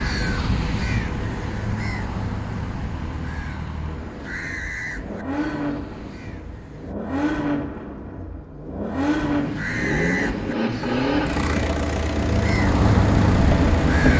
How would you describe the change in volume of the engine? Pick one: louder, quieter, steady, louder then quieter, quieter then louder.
louder.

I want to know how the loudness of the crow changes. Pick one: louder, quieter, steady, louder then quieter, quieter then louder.
quieter then louder.